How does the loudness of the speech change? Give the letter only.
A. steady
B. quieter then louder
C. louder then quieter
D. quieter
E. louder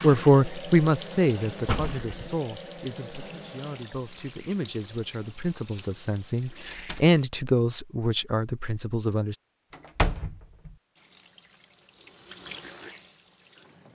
B.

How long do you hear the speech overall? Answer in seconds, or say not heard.
9 s.